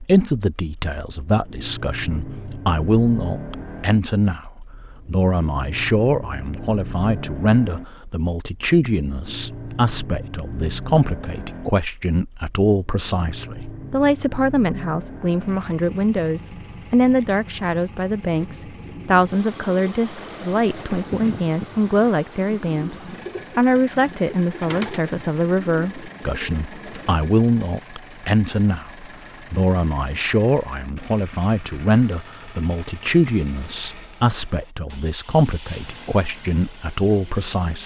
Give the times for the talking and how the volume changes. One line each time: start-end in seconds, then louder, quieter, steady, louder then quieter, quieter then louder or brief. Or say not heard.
0.0-37.8 steady.